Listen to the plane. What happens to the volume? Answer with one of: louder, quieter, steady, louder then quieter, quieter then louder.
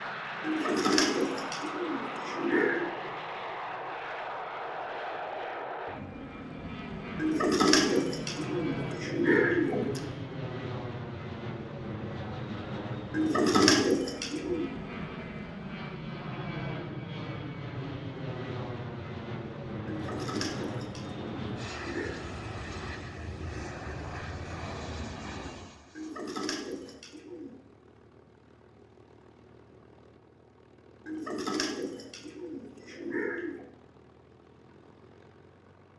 quieter.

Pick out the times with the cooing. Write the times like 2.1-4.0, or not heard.
0.4-2.9, 7.2-10.1, 13.1-14.7, 19.9-22.2, 25.9-27.6, 31.1-33.6.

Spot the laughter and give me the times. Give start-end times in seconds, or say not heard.
not heard.